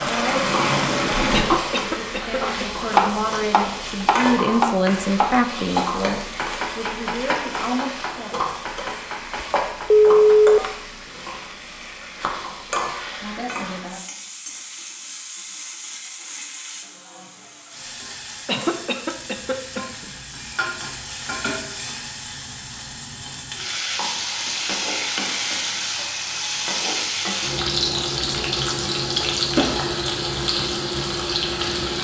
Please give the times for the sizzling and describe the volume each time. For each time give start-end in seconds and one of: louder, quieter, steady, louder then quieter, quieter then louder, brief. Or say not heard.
0.0-31.9 quieter then louder.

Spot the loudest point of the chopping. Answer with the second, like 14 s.
3 s.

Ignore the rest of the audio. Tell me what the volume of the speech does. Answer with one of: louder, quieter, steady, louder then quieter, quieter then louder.
louder then quieter.